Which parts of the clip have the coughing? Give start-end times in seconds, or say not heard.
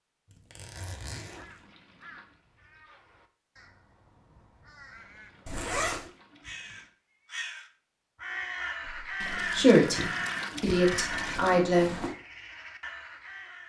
not heard.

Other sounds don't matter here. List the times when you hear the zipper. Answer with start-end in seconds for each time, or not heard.
0.3-1.6, 5.5-6.1, 11.1-12.2.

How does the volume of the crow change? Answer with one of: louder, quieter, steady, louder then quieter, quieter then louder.
louder then quieter.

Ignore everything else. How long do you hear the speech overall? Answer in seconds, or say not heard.
3 s.